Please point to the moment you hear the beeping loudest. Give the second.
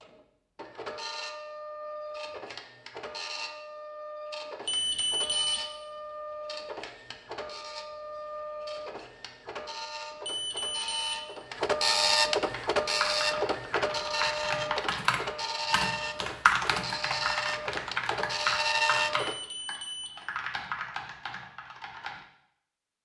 5 s.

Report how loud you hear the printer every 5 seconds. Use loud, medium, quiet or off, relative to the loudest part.
medium, medium, loud, loud, off.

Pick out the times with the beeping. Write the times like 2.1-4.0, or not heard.
4.7-5.6, 10.2-11.2, 19.2-20.1.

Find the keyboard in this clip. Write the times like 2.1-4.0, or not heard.
12.4-22.2.